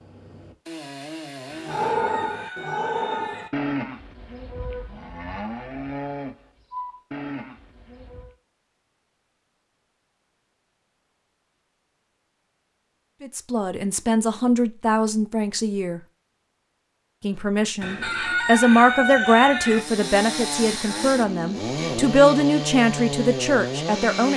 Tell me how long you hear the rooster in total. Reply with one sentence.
The rooster can be heard for 4 seconds in total.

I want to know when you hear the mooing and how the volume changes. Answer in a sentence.
You can hear the mooing from 1.6 to 8.3 s, getting quieter.